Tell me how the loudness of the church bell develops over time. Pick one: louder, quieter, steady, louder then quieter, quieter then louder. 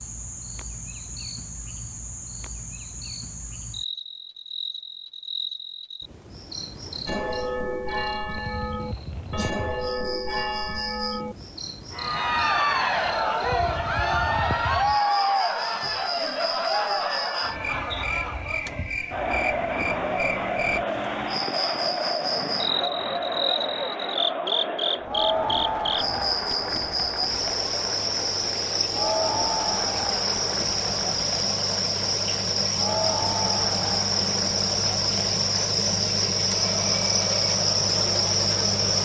steady.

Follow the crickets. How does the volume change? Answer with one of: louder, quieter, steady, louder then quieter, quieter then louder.
louder.